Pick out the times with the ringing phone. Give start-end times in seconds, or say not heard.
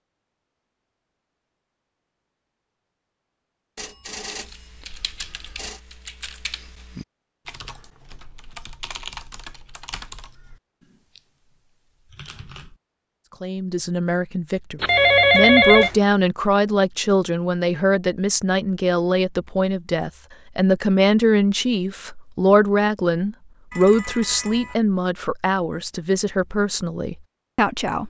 3.8-5.8, 14.8-15.9, 23.7-24.8.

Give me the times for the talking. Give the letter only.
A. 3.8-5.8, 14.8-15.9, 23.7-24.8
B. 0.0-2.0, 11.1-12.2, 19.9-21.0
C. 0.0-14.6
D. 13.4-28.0
D.